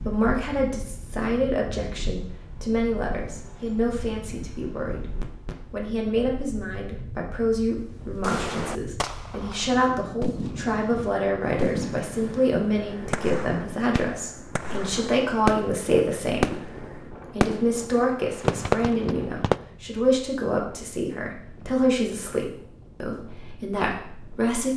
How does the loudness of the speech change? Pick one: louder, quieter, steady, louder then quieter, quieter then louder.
steady.